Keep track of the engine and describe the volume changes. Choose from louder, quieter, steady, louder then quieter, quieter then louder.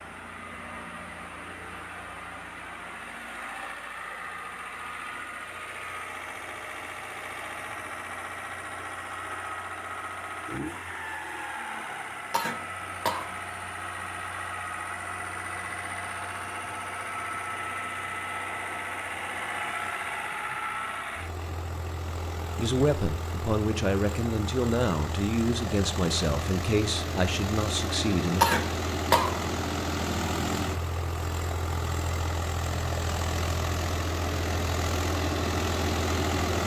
louder.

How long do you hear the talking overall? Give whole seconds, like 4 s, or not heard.
6 s.